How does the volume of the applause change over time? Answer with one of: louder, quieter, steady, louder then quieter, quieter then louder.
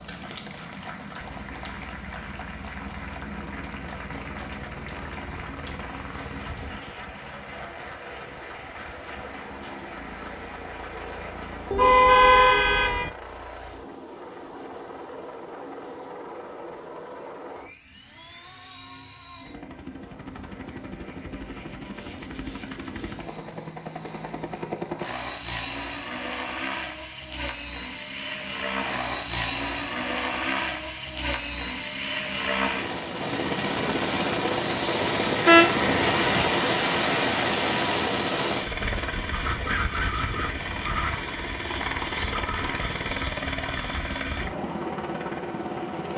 steady.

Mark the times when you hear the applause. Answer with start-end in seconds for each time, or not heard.
0.0-11.8.